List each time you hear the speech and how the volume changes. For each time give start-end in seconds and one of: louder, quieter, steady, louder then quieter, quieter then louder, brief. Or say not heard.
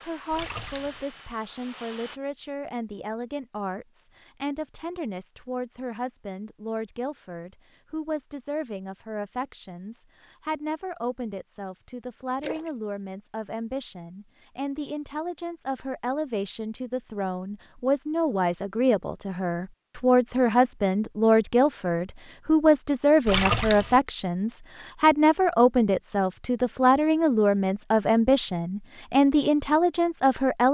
0.0-30.6 louder.